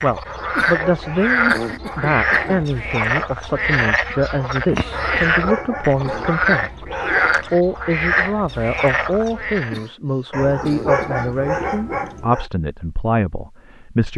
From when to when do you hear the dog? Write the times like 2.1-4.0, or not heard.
0.2-2.8, 4.9-7.6, 10.3-12.4.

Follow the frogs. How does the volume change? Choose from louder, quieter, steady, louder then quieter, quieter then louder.
steady.